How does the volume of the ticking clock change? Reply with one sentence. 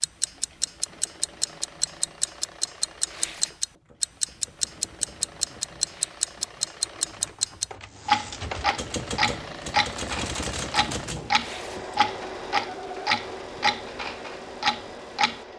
The loudness of the ticking clock stays about the same.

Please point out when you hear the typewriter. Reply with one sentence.
The typewriter can be heard from 3.7 to 12.0 s.